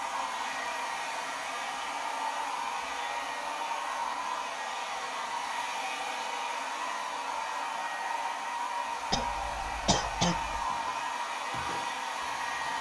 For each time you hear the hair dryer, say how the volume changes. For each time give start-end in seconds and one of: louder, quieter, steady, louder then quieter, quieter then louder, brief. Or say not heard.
0.0-12.7 steady.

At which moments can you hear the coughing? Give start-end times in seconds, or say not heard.
9.1-10.7.